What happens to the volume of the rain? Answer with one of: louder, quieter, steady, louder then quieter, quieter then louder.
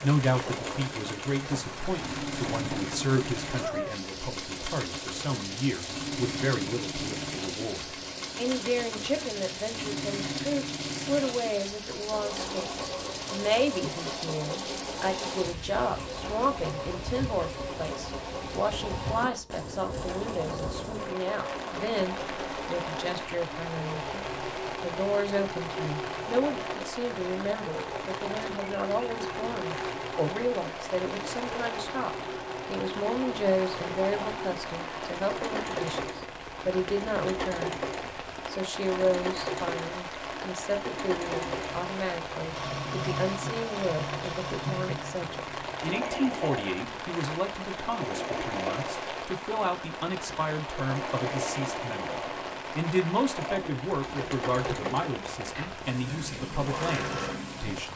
steady.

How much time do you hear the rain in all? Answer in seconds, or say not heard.
58 s.